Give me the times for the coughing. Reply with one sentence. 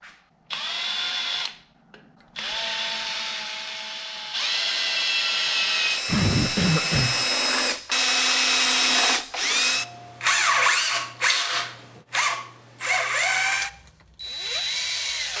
The coughing can be heard from 6.0 to 7.2 s.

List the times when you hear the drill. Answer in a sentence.
You can hear the drill from 0.0 to 15.3 s.